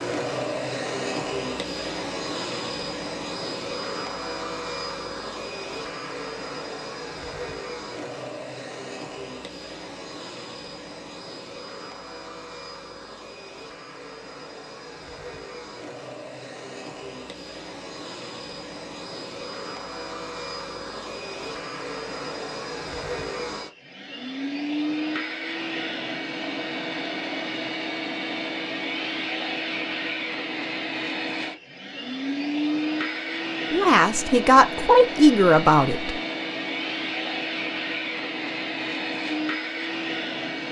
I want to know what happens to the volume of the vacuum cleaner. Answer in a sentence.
The volume of the vacuum cleaner goes down, then up.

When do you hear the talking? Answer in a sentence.
You can hear the talking from 33.7 to 36.1 s.